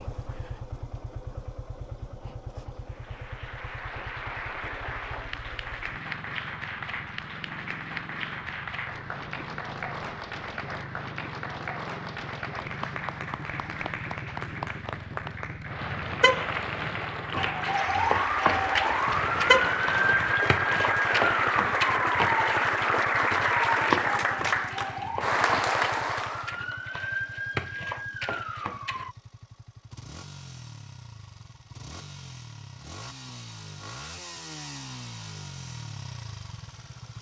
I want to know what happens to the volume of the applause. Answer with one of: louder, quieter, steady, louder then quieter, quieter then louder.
louder.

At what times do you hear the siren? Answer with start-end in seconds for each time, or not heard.
17.3-29.1.